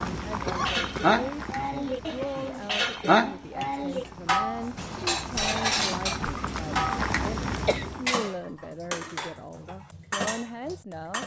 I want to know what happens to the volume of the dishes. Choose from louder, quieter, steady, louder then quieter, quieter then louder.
quieter.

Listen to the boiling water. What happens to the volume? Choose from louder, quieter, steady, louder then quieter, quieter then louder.
quieter then louder.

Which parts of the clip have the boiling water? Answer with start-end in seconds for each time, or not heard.
0.0-8.2.